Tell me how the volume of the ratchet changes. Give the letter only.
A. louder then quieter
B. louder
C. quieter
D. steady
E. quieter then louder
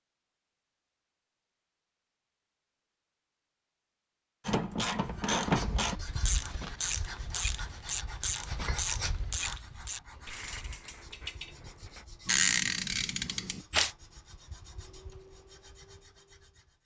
E.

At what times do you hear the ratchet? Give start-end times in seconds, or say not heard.
4.5-13.9.